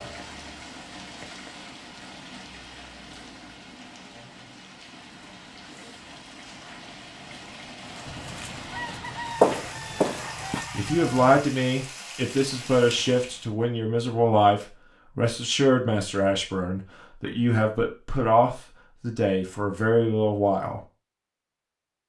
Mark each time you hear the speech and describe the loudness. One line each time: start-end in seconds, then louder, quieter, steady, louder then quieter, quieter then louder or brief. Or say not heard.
10.7-20.8 steady.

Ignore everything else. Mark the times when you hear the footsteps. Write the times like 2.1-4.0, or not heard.
7.8-10.7.